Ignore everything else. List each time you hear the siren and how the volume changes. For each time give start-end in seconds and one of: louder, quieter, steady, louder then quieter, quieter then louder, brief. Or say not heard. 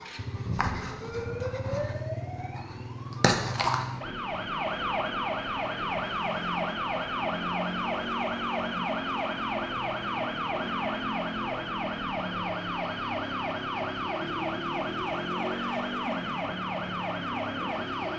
0.0-18.1 steady.